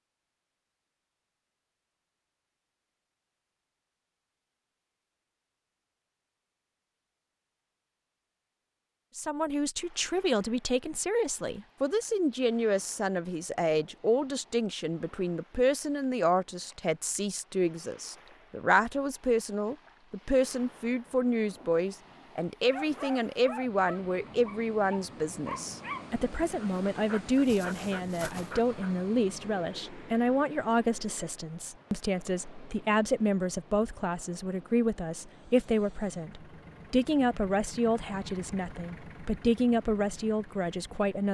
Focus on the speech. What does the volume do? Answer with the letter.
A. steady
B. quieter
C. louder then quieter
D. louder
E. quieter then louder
A.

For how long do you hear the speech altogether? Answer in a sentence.
You can hear the speech for 32 seconds altogether.